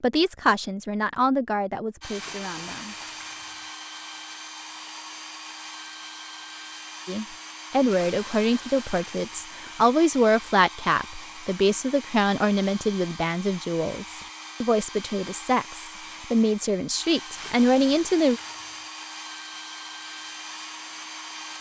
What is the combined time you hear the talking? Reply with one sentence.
You can hear the talking for 14 seconds altogether.